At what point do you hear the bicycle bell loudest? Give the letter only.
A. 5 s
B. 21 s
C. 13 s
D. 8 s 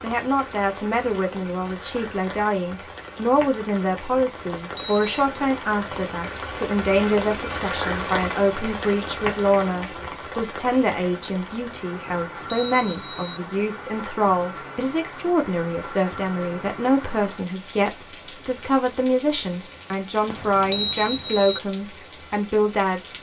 B.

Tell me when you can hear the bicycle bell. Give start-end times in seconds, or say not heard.
4.3-5.1, 12.1-13.4, 20.3-21.6.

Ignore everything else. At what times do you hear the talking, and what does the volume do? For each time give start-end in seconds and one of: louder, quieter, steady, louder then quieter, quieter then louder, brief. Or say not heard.
0.0-23.1 steady.